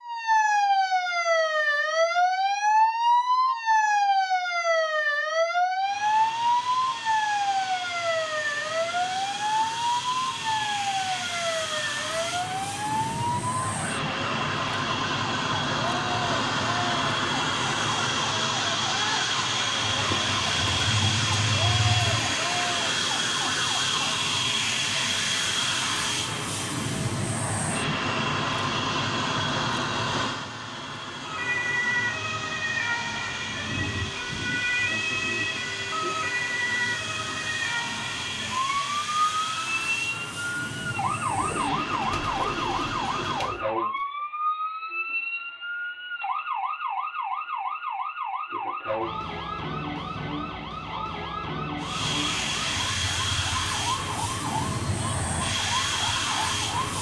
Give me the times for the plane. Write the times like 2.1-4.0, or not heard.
5.8-43.6, 51.8-56.9.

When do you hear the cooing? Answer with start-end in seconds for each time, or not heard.
19.8-22.4, 41.2-43.6.